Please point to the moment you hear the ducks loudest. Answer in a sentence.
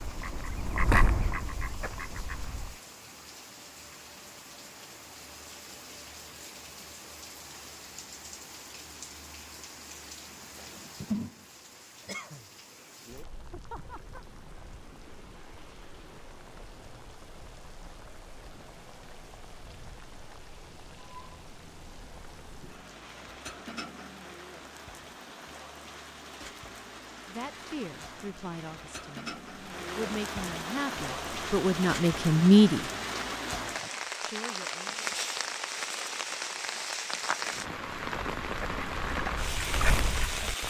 The loudest moment of the ducks is at 1 second.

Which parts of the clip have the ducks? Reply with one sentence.
You can hear the ducks from 0.0 to 2.8 s and from 38.4 to 40.6 s.